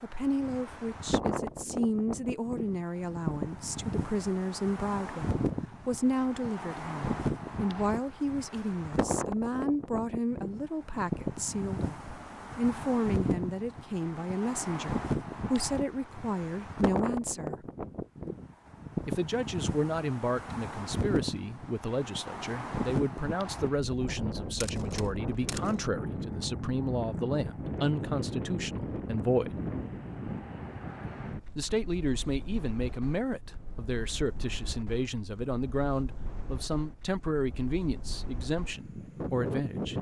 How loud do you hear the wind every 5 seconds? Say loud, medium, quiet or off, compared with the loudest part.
loud, loud, loud, loud, loud, loud, medium, medium.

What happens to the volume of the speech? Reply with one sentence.
The loudness of the speech stays about the same.